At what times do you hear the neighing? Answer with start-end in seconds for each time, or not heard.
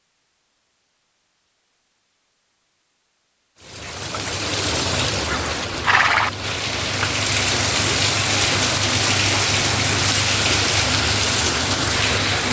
5.2-6.3.